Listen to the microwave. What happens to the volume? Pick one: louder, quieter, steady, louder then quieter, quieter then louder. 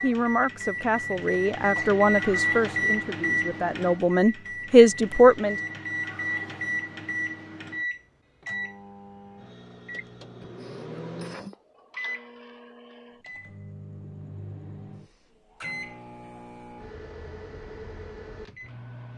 quieter.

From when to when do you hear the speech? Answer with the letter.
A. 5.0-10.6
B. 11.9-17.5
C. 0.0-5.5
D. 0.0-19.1
C.